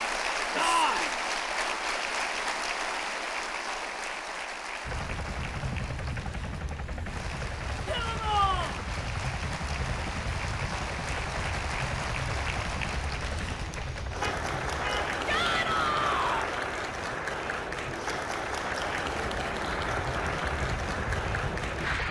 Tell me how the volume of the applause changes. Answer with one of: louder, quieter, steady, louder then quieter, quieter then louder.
quieter then louder.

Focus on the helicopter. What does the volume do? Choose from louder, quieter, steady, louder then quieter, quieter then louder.
quieter then louder.